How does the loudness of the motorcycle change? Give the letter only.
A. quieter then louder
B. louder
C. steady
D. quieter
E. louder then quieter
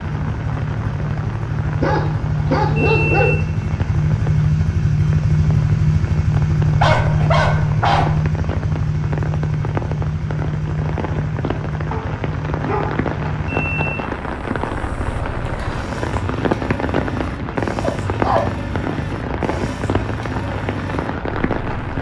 D.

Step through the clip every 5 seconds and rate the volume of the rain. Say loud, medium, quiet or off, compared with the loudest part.
medium, medium, loud, loud, loud.